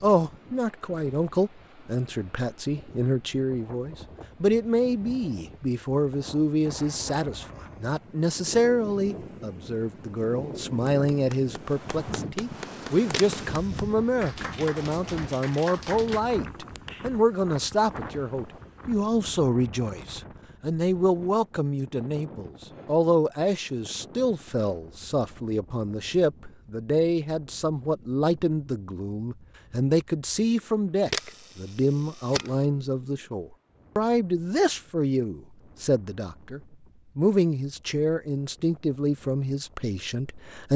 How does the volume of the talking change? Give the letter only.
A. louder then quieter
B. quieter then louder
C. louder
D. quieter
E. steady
E.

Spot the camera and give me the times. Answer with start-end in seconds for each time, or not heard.
13.1-13.8, 31.1-32.6.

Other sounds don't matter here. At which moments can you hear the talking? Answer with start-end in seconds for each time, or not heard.
0.0-40.7.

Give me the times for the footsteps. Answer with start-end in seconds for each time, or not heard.
not heard.